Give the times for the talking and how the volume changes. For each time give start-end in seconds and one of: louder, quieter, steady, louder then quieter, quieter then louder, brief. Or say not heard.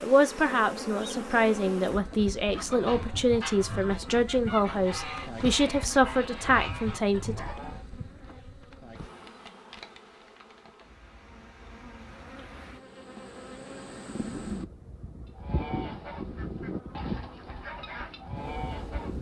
0.0-7.3 steady.